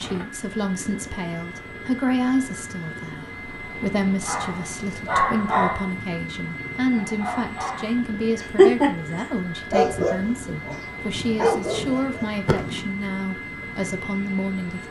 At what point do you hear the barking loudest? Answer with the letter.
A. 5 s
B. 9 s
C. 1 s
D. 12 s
B.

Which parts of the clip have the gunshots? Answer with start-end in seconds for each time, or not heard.
11.7-12.9.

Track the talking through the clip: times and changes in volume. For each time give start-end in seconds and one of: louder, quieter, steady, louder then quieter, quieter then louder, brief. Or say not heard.
0.0-14.8 steady.